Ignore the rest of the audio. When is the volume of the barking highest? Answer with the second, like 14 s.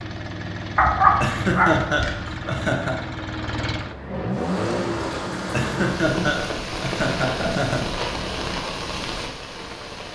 1 s.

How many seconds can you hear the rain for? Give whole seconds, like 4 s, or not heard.
6 s.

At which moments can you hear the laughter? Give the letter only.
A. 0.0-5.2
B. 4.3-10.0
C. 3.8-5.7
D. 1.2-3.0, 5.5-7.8
D.